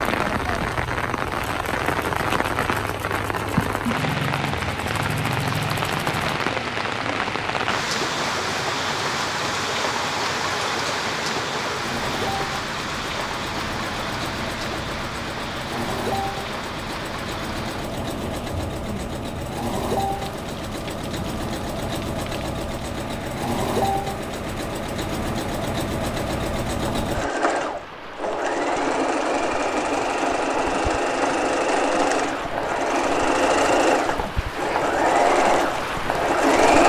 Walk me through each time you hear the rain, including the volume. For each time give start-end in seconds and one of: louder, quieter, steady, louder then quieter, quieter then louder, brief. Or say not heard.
0.0-36.8 quieter then louder.